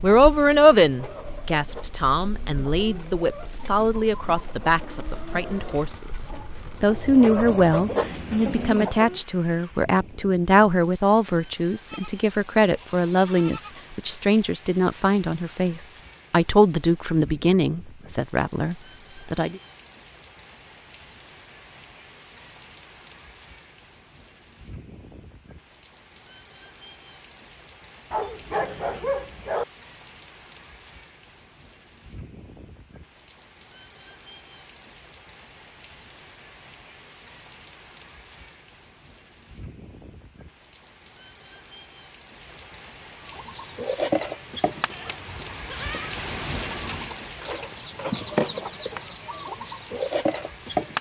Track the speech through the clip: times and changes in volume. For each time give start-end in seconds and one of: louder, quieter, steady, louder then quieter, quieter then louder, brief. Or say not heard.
0.0-19.6 steady.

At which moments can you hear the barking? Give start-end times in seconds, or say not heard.
28.1-29.6.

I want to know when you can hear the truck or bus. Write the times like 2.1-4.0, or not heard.
not heard.